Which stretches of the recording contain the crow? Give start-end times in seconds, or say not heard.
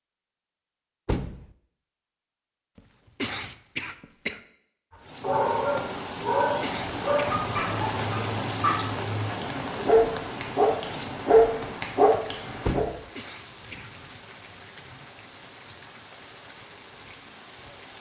not heard.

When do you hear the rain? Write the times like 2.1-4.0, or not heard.
5.0-17.9.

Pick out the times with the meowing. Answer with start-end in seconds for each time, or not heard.
not heard.